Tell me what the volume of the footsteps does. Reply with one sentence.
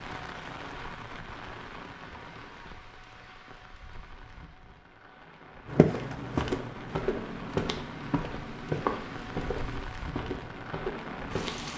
The loudness of the footsteps goes down.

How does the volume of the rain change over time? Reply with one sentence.
The volume of the rain goes down, then up.